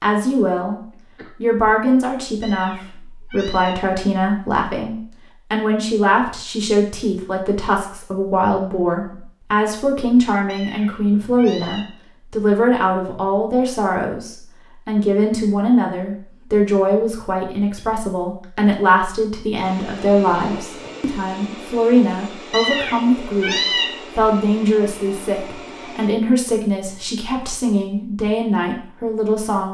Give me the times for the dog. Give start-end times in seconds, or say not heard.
not heard.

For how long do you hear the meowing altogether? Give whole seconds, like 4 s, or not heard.
4 s.